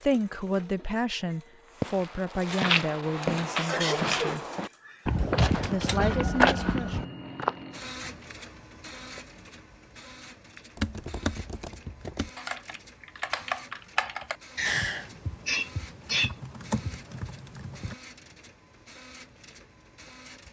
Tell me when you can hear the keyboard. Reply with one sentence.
The keyboard can be heard from 10.8 to 17.9 s.